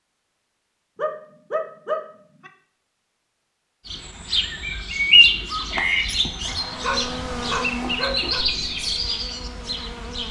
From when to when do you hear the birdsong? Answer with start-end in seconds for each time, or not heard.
3.9-10.2.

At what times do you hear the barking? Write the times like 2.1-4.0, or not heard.
0.9-2.5, 6.5-8.4.